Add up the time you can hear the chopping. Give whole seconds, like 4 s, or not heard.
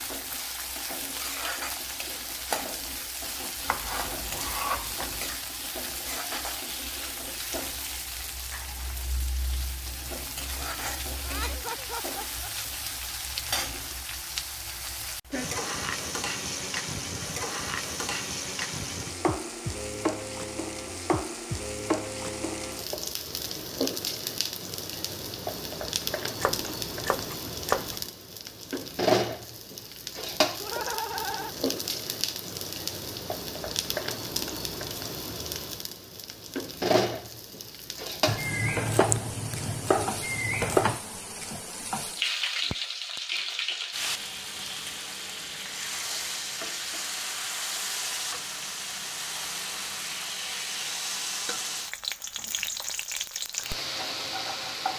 6 s.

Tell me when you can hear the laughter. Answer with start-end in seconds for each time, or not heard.
11.2-12.5, 30.6-31.6.